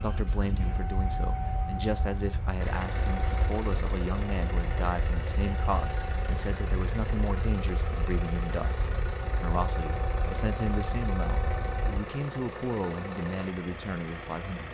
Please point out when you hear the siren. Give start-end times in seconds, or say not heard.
0.0-12.0.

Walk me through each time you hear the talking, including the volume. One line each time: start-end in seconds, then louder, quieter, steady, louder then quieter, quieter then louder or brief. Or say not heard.
0.0-14.6 steady.